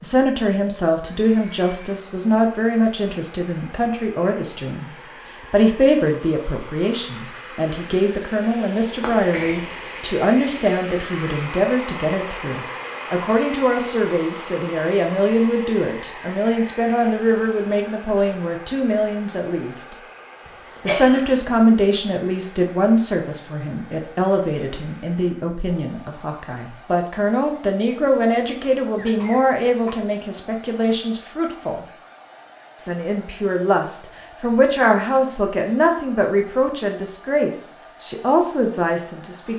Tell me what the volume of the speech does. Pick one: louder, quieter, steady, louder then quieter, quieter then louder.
steady.